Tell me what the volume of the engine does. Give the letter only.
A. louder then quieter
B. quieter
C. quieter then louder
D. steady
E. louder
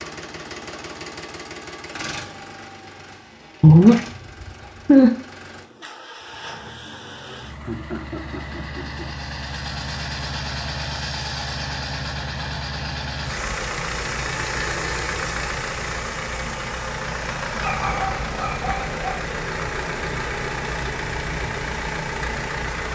E.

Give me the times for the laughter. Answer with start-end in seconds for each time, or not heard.
7.6-9.1.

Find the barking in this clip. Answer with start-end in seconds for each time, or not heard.
3.6-5.1, 17.6-19.2.